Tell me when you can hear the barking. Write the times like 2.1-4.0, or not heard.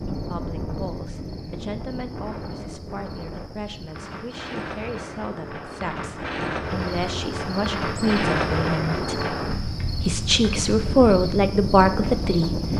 not heard.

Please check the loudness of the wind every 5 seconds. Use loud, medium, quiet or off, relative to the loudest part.
medium, loud, loud.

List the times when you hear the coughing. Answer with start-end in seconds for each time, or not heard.
not heard.